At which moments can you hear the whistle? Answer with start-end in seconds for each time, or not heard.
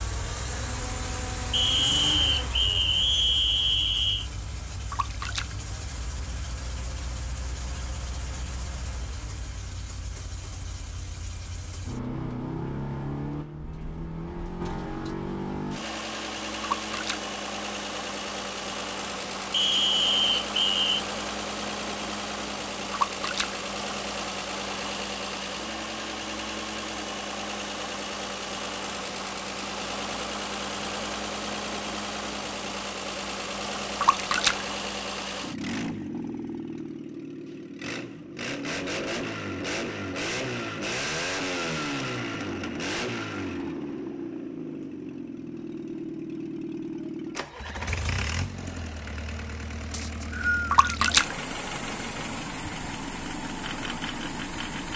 1.5-4.3, 19.5-21.0, 49.9-51.0.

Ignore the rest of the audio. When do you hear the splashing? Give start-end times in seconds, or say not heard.
4.9-5.5, 16.6-17.2, 22.9-23.6, 34.0-34.6, 50.7-51.4.